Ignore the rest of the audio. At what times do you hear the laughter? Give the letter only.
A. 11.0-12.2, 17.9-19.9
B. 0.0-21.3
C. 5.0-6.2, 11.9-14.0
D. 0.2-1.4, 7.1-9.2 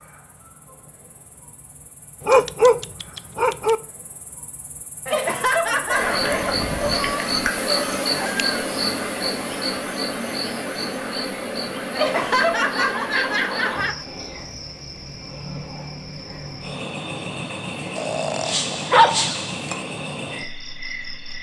C.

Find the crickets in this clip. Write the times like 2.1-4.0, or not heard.
0.0-21.3.